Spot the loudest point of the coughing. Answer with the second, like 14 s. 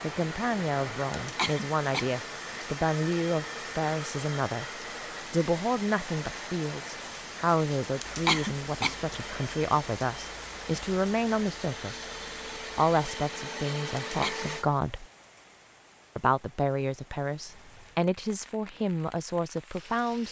8 s.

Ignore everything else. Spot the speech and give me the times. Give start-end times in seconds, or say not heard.
0.0-4.7, 5.3-12.1, 12.8-15.1, 16.1-20.2.